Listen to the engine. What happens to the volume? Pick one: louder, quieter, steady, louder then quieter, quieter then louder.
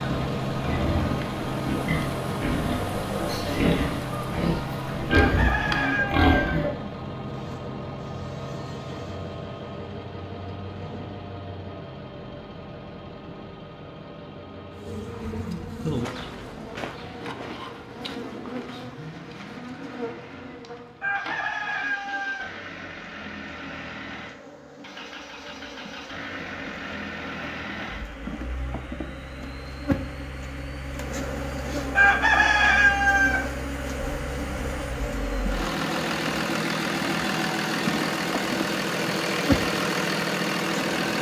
quieter then louder.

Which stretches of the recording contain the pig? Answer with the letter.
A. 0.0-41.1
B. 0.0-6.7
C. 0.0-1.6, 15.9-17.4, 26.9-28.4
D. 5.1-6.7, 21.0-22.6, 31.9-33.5
B.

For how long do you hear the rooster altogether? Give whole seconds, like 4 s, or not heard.
5 s.